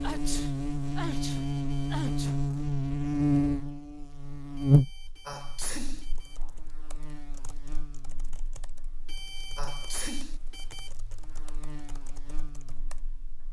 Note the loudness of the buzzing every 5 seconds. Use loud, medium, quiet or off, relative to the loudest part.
loud, quiet, quiet.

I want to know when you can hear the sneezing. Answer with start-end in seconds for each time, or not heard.
0.0-2.4, 5.2-6.0, 9.6-10.4.